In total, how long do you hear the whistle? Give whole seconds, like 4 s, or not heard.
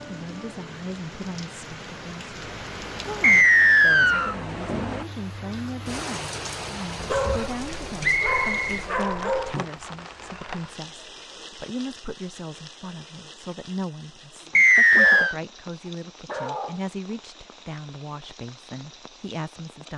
3 s.